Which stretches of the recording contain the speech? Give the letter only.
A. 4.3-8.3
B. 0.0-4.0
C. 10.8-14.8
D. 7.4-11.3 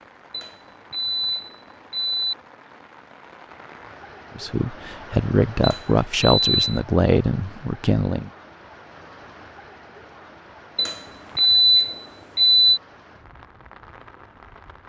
A.